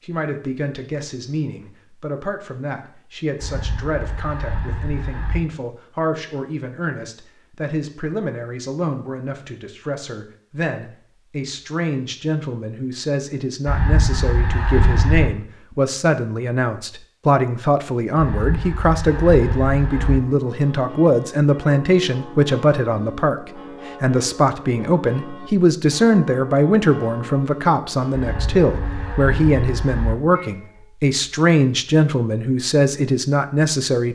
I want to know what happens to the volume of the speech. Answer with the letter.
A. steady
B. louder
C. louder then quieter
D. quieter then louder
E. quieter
B.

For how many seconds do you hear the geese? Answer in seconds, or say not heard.
8 s.